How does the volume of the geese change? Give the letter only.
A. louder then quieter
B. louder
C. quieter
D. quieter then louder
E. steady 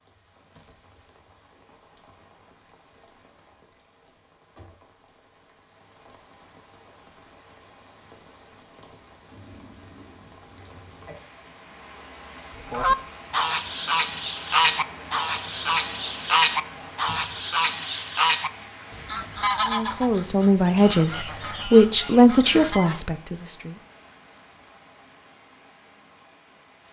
C.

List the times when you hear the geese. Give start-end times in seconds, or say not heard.
12.7-23.0.